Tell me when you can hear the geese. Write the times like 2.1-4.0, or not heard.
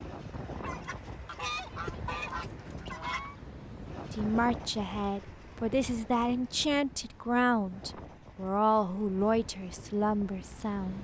0.6-3.4.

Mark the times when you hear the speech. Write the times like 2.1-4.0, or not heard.
4.1-10.9.